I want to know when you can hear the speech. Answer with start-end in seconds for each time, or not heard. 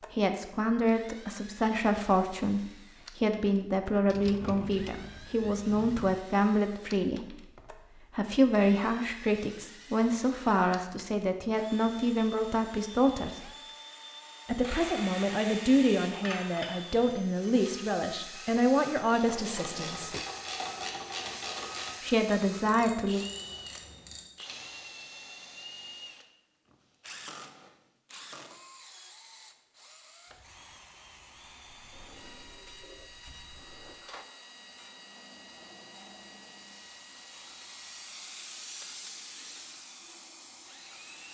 0.1-13.5, 14.4-20.1, 22.0-23.2.